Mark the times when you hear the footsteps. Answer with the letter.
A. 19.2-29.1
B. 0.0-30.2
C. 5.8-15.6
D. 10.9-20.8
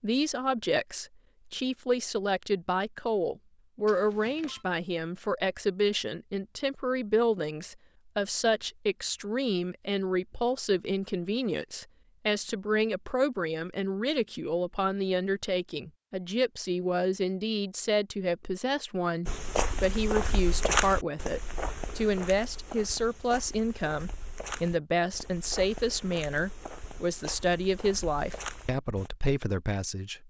A.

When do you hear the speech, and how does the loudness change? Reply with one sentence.
The speech can be heard from 0.0 to 30.2 s, at a steady volume.